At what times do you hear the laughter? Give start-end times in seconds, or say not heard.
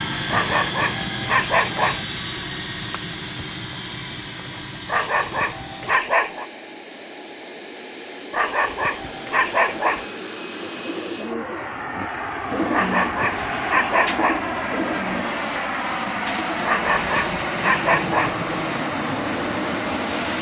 not heard.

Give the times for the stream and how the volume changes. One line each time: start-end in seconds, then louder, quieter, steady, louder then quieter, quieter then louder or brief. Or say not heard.
not heard.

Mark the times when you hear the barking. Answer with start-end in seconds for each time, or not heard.
0.3-2.0, 4.8-6.5, 8.3-10.1, 12.7-14.4, 16.6-18.4.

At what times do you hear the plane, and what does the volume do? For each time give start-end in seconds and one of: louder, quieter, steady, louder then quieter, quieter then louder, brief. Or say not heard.
0.0-20.3 quieter then louder.